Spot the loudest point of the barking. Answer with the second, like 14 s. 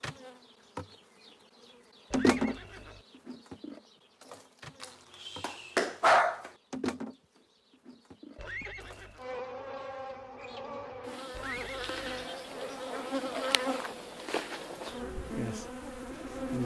6 s.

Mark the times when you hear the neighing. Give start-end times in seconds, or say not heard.
2.1-3.0, 8.3-9.2, 11.3-12.2.